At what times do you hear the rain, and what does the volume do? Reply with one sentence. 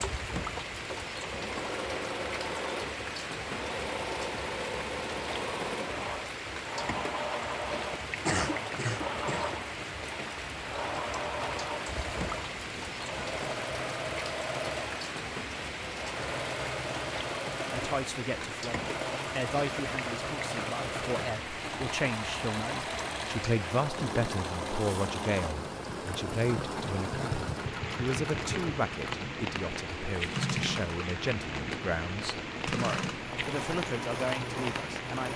The rain can be heard from 0.0 to 35.3 s, at a steady volume.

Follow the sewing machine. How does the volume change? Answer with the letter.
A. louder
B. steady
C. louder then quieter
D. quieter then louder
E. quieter
B.